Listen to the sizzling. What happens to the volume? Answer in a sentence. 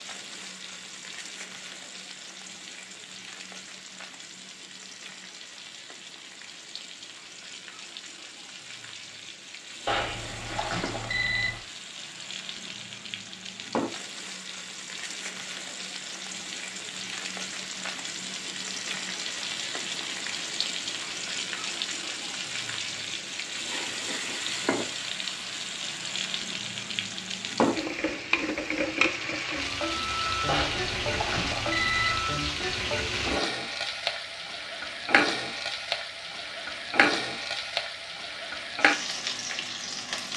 The volume of the sizzling goes up.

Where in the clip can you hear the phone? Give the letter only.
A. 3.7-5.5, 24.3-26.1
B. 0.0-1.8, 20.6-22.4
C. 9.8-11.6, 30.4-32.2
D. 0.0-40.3
C.